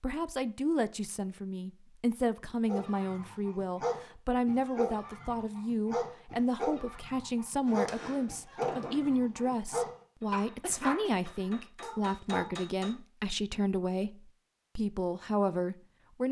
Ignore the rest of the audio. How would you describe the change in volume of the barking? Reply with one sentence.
The loudness of the barking stays about the same.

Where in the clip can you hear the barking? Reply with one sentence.
The barking can be heard from 2.6 to 12.5 s.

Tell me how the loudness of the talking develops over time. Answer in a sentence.
The loudness of the talking stays about the same.